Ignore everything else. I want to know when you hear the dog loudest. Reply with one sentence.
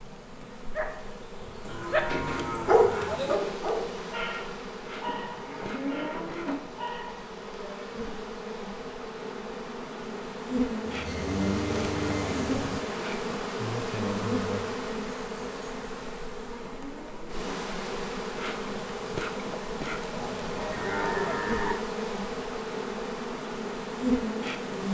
The loudest moment of the dog is at 3 seconds.